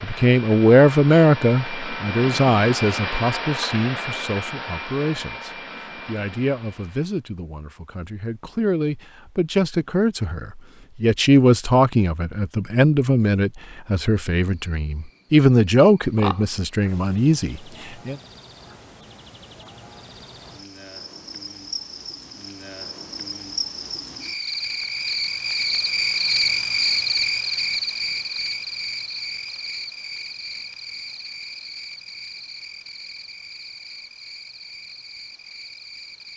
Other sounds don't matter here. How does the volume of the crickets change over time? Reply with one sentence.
The loudness of the crickets goes up, then down.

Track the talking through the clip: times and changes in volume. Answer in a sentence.
You can hear the talking from 0.0 to 18.1 s, getting quieter then louder.